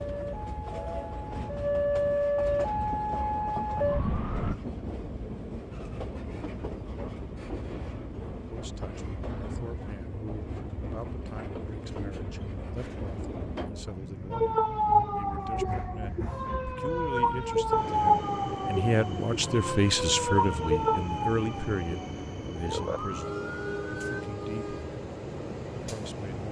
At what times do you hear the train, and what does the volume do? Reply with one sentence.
You can hear the train from 0.0 to 26.4 s, at a steady volume.